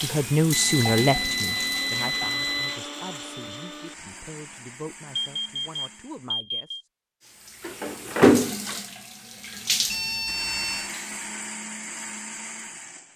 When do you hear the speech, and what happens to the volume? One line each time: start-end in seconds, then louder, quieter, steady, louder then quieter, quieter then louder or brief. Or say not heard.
0.0-6.8 quieter.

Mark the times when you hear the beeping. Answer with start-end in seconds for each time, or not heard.
0.5-2.8, 5.2-6.8, 9.8-10.9.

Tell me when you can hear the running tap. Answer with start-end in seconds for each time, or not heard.
0.0-2.2, 7.6-11.2.